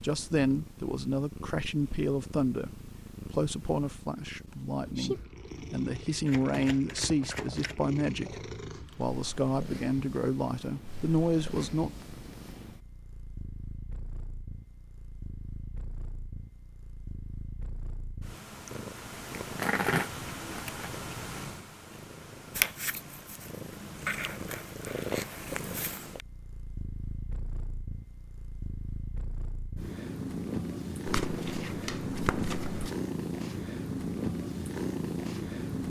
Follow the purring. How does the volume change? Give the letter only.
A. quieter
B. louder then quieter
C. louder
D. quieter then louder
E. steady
C.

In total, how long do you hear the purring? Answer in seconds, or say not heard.
36 s.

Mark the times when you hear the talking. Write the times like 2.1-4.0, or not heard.
0.0-11.9.